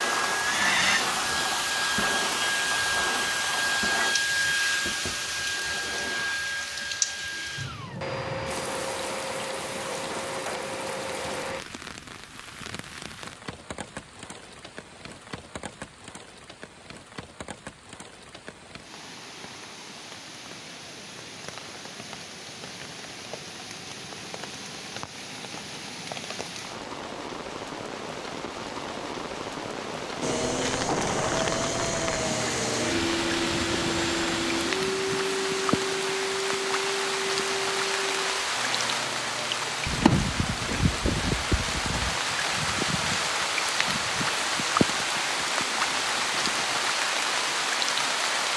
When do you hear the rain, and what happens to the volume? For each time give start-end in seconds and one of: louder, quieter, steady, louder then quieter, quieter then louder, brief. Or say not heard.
0.0-48.5 quieter then louder.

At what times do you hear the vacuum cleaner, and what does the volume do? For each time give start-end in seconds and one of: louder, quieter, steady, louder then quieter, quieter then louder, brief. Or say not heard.
0.0-11.6 quieter
30.2-48.5 quieter.